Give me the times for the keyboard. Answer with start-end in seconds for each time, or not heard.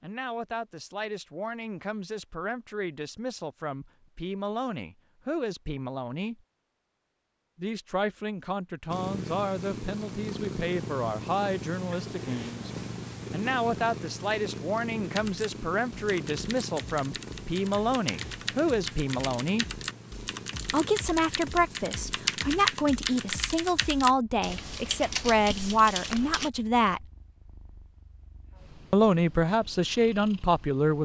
15.0-26.5.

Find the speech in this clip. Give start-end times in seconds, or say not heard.
0.0-6.4, 7.5-12.7, 13.3-19.7, 20.7-27.1, 28.9-30.9.